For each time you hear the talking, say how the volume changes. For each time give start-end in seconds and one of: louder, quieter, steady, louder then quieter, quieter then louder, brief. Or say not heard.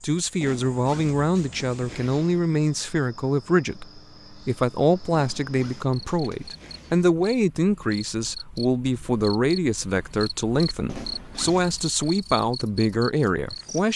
0.0-13.9 steady.